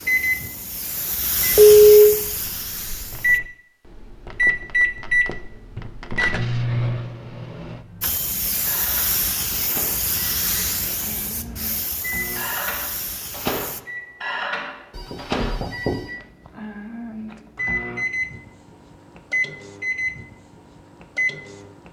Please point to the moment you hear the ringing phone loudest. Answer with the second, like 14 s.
2 s.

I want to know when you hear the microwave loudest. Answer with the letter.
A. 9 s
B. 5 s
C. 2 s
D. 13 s
B.